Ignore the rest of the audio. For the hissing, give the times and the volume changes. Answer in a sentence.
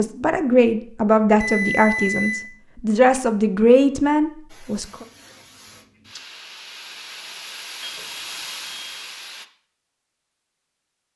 You can hear the hissing from 4.5 to 9.4 s, getting louder.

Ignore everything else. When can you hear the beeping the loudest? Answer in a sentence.
The volume of the beeping peaks at 2 seconds.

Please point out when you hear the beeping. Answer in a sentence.
You can hear the beeping from 1.4 to 2.5 s and from 7.8 to 9.1 s.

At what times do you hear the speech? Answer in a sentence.
You can hear the speech from 0.0 to 5.0 s.